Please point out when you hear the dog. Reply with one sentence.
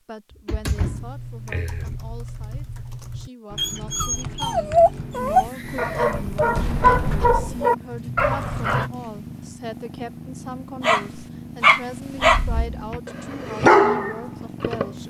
You can hear the dog from 3.5 to 8.9 s, from 10.8 to 12.4 s and from 13.1 to 14.8 s.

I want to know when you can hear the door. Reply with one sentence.
You can hear the door from 0.3 to 2.0 s, from 6.5 to 7.5 s and from 12.2 to 13.0 s.